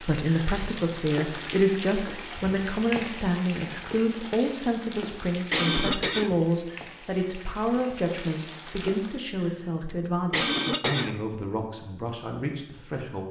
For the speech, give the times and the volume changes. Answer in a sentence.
You can hear the speech from 0.0 to 13.2 s, getting quieter.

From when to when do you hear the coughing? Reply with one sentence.
You can hear the coughing from 0.2 to 1.0 s, from 4.5 to 6.4 s and from 9.4 to 11.2 s.